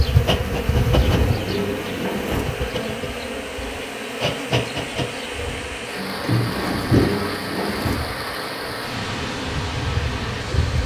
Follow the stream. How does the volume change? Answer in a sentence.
The loudness of the stream goes up.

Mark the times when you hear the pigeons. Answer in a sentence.
The pigeons can be heard from 0.4 to 2.5 s and from 6.0 to 8.0 s.